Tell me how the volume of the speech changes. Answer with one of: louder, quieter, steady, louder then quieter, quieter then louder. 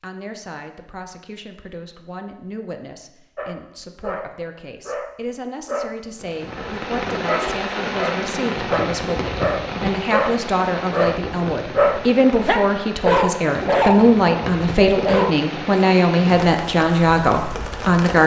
louder.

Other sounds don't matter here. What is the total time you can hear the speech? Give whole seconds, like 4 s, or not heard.
18 s.